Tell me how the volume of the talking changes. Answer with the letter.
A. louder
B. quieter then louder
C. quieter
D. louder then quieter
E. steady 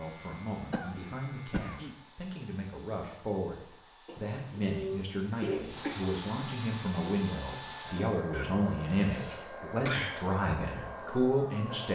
A.